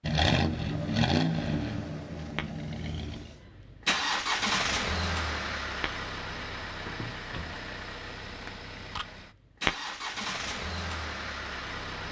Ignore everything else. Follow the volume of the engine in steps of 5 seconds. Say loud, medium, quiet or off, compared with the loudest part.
loud, medium, medium.